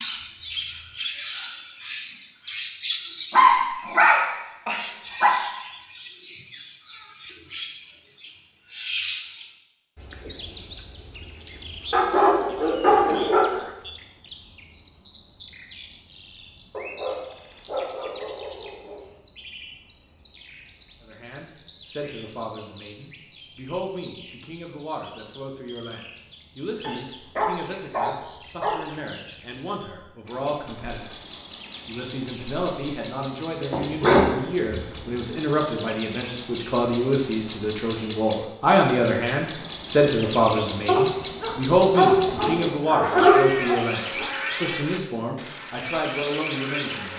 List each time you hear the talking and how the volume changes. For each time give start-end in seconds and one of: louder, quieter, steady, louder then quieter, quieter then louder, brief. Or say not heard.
21.0-47.1 louder.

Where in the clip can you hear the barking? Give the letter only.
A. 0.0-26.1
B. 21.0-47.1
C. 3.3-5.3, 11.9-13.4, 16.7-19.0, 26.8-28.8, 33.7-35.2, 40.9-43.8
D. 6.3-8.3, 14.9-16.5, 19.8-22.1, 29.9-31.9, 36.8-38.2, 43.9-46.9
C.